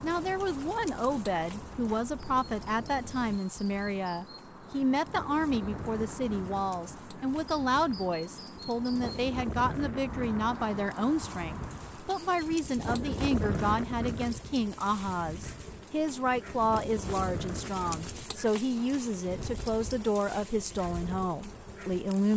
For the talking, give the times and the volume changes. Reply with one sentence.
The talking can be heard from 0.0 to 22.3 s, at a steady volume.